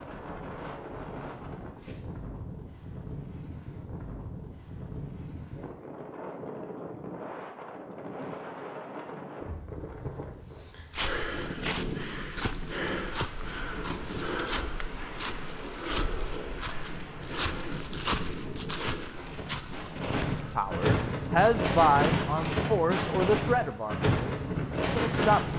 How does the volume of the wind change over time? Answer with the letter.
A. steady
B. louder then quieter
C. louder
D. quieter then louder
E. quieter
C.